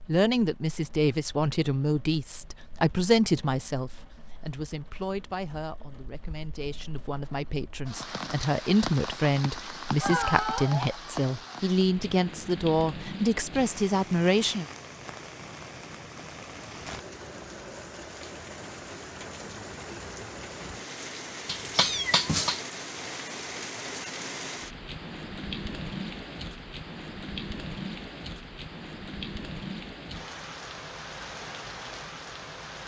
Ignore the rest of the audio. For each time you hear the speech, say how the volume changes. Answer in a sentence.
The speech can be heard from 0.1 to 14.7 s, getting quieter then louder.